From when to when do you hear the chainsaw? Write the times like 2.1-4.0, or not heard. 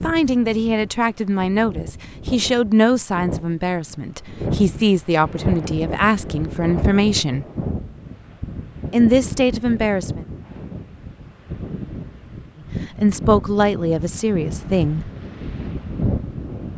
not heard.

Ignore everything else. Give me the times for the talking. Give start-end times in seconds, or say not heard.
0.0-7.5, 8.9-10.2, 12.9-15.1.